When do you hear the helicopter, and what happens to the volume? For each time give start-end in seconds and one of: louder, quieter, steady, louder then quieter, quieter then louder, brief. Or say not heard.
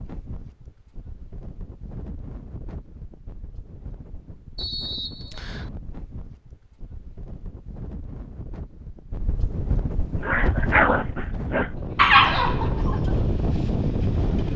not heard.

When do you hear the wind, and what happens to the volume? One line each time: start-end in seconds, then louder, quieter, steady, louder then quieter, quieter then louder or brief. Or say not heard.
0.0-14.5 louder.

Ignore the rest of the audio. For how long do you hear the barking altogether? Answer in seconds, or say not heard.
3 s.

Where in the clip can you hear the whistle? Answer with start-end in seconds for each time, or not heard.
4.5-5.7.